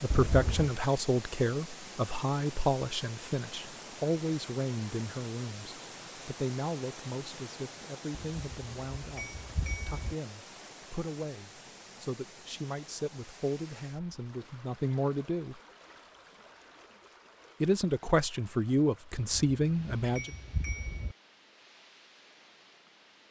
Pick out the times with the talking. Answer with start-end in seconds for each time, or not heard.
0.0-15.6, 17.6-20.3.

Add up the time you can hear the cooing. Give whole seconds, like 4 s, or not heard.
not heard.